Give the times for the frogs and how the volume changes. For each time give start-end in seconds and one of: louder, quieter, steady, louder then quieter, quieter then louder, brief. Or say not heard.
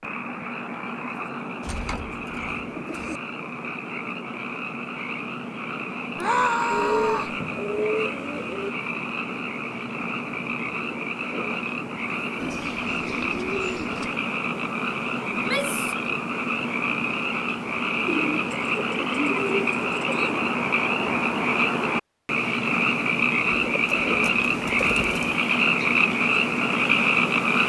0.0-27.6 louder.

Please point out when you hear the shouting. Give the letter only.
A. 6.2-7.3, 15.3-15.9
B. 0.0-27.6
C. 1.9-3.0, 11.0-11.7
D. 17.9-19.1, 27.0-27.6
A.